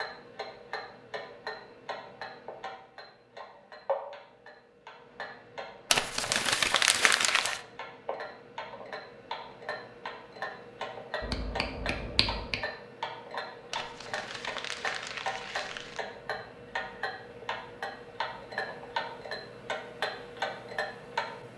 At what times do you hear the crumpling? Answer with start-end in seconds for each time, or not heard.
5.9-7.6, 13.7-16.0.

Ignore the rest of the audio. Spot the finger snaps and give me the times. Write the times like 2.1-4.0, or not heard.
11.2-12.6.